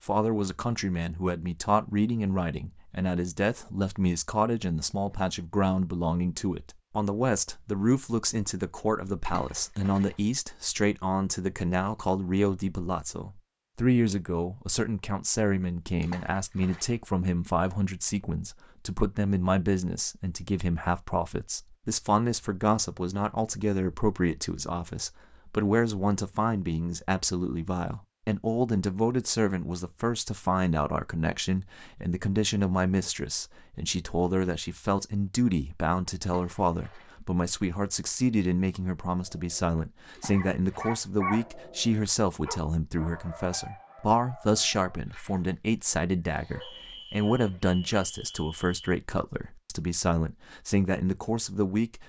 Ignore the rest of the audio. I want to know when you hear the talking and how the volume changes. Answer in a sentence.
You can hear the talking from 0.1 to 52.0 s, at a steady volume.